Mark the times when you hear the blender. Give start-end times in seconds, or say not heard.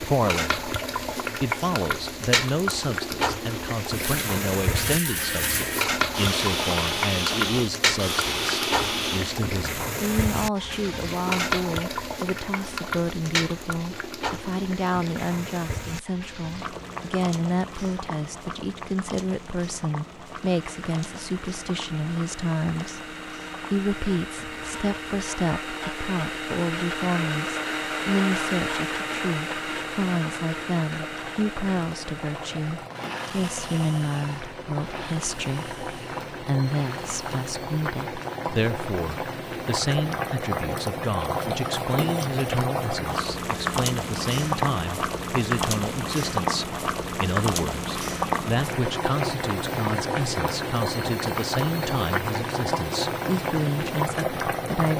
3.9-9.3, 20.2-37.5.